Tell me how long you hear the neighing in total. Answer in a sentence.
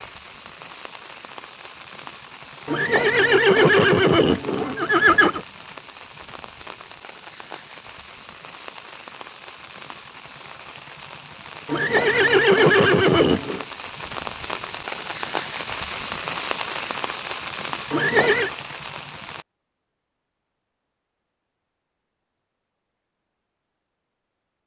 You can hear the neighing for 5 seconds altogether.